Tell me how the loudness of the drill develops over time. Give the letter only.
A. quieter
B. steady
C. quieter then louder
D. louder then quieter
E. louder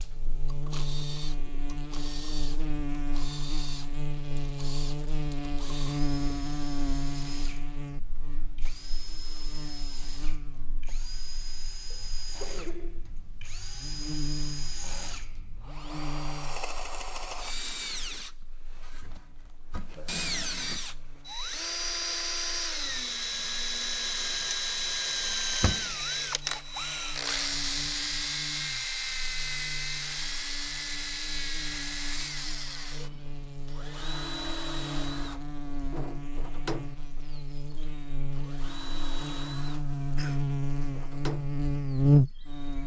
D.